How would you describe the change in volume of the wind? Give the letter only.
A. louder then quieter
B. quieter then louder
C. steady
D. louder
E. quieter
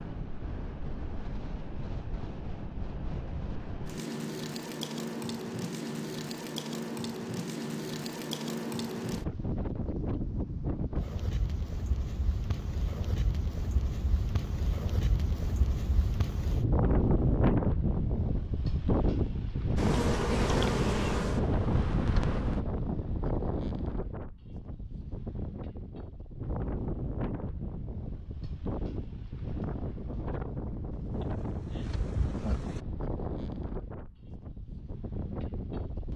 A.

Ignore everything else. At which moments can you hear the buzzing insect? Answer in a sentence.
The buzzing insect can be heard from 19.8 to 22.6 s and from 30.9 to 32.8 s.